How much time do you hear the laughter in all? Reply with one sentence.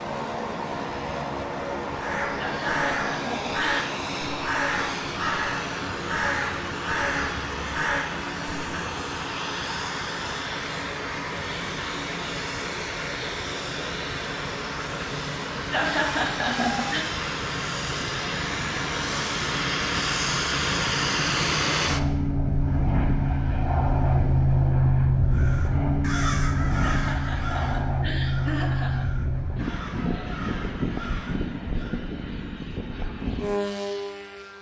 The laughter can be heard for 5 seconds in total.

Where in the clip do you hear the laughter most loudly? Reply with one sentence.
The volume of the laughter peaks at 16 seconds.